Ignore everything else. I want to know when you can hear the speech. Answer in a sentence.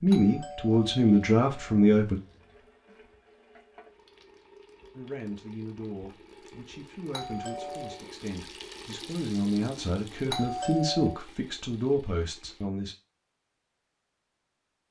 The speech can be heard from 0.0 to 2.2 s and from 5.0 to 12.9 s.